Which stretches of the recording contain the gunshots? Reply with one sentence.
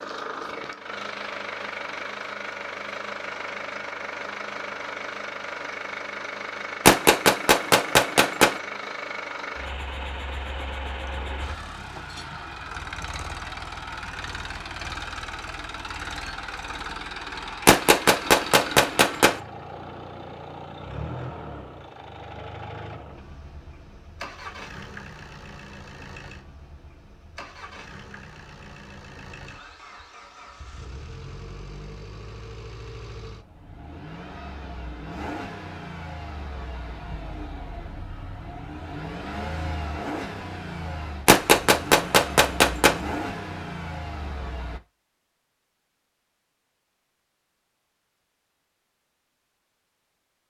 The gunshots can be heard from 6.8 to 8.6 s, from 17.6 to 19.4 s and from 41.2 to 43.0 s.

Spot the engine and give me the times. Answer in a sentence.
The engine can be heard from 0.0 to 44.8 s.